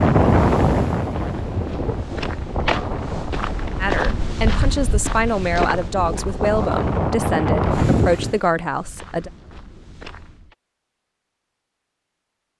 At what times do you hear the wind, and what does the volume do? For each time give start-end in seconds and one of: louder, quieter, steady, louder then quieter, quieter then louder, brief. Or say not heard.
0.0-8.4 quieter then louder.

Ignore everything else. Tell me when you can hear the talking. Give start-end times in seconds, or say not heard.
3.8-9.3.